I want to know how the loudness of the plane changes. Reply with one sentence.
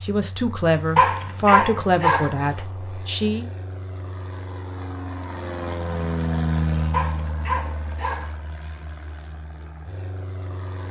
The loudness of the plane goes up, then down.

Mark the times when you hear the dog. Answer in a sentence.
You can hear the dog from 0.9 to 2.4 s and from 6.9 to 8.3 s.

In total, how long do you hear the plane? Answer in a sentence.
You can hear the plane for 11 seconds altogether.